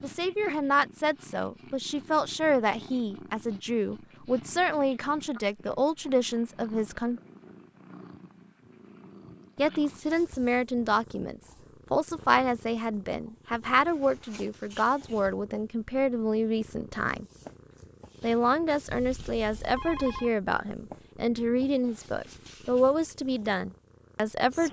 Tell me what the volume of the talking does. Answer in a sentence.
The loudness of the talking stays about the same.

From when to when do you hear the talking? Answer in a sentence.
You can hear the talking from 0.0 to 7.2 s, from 9.6 to 17.2 s and from 18.2 to 24.6 s.